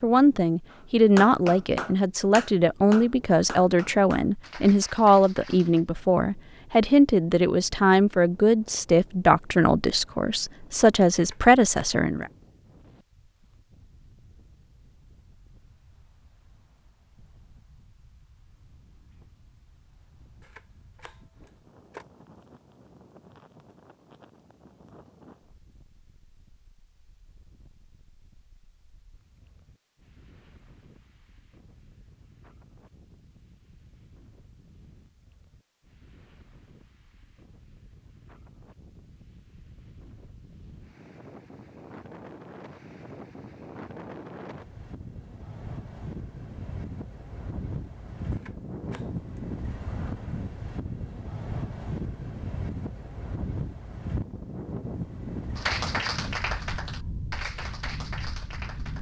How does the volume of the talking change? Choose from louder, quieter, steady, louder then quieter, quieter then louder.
steady.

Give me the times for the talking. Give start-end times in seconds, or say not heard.
0.0-12.3.